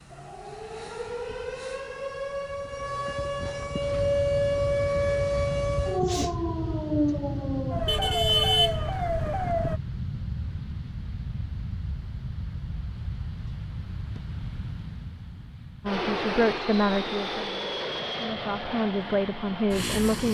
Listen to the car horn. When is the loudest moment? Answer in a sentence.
The loudest moment of the car horn is at 8 seconds.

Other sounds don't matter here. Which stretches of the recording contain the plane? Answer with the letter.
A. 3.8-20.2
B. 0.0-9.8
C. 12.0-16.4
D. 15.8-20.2
A.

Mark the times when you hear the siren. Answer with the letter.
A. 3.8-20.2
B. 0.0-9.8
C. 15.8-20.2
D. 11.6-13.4
B.